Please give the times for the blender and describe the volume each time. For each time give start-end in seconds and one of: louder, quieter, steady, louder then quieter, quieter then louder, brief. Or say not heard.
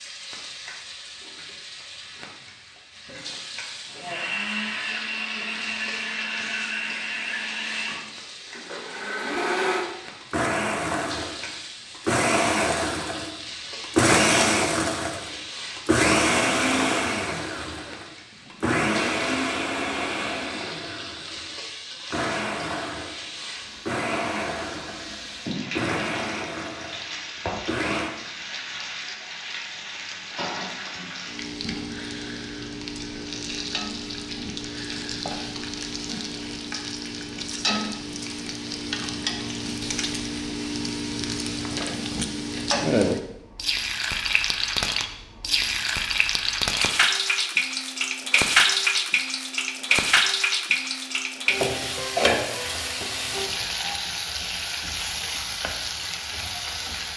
3.9-28.1 louder then quieter.